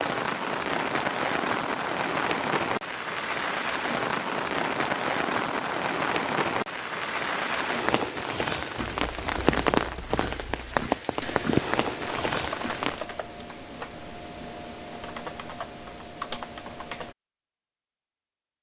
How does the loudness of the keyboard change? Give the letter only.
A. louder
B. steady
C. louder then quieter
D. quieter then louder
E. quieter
A.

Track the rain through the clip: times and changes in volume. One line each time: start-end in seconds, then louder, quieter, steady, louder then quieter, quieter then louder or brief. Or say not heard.
0.0-13.1 steady.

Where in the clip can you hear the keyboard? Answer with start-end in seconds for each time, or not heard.
8.8-17.1.